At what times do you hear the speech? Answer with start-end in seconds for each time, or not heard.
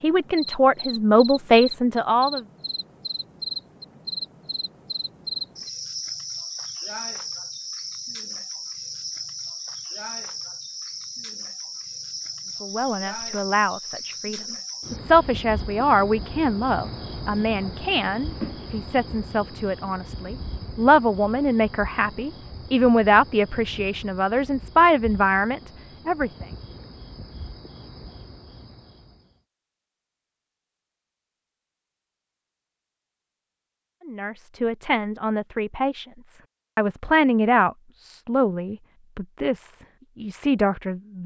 0.0-2.5, 12.6-26.4, 34.0-41.2.